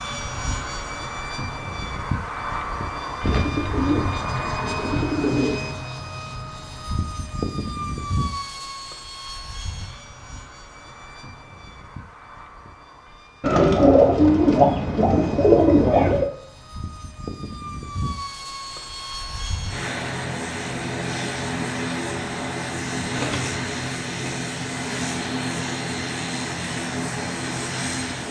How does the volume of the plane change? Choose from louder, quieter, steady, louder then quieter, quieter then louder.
quieter then louder.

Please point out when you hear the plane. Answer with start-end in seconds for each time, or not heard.
0.0-28.2.